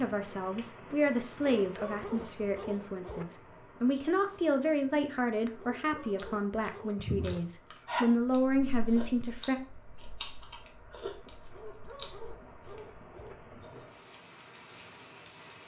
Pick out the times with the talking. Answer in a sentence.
You can hear the talking from 0.0 to 9.6 s.